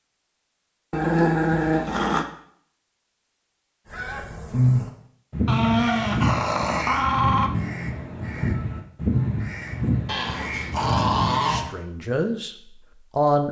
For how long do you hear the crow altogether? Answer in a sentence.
You can hear the crow for 8 seconds altogether.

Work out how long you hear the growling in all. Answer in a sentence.
You can hear the growling for 5 seconds altogether.